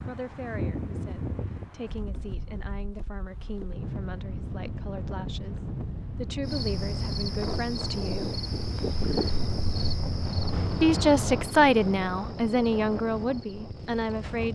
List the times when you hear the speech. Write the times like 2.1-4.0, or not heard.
0.0-8.4, 10.8-14.5.